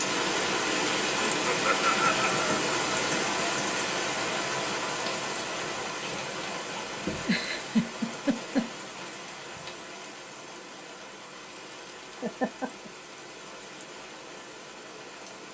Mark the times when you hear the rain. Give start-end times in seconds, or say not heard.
0.0-15.4.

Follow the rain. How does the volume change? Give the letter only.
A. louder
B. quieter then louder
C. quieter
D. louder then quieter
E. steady
C.